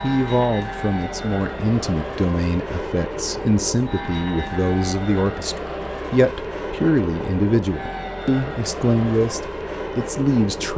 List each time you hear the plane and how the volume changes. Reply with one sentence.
The plane can be heard from 0.0 to 10.7 s, at a steady volume.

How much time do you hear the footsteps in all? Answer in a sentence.
You can't hear the footsteps here.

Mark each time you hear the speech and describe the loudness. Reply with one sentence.
You can hear the speech from 0.0 to 10.7 s, at a steady volume.